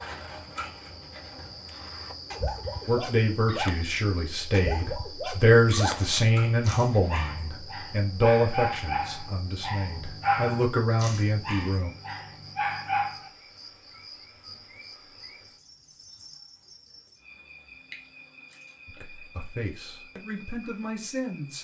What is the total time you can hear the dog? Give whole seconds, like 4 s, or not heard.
11 s.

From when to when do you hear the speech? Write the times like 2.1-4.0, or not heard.
2.9-11.9, 18.9-21.5.